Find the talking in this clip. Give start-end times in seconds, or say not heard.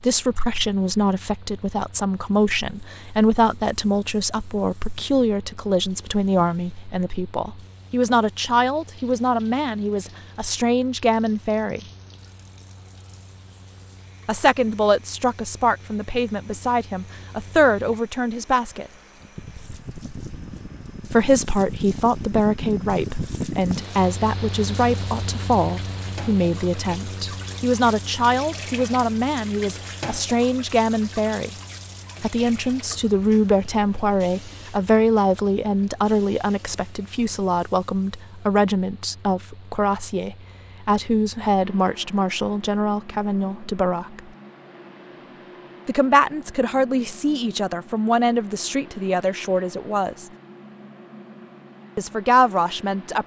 0.0-11.8, 14.2-18.9, 21.1-31.5, 32.2-44.2, 45.9-50.2, 52.0-53.2.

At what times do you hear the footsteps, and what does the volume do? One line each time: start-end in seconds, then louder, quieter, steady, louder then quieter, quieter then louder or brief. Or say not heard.
not heard.